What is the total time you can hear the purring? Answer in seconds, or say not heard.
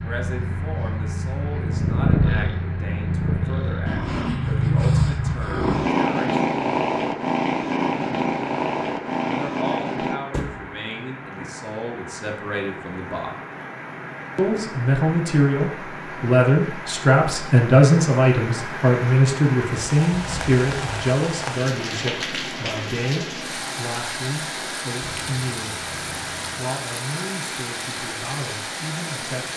12 s.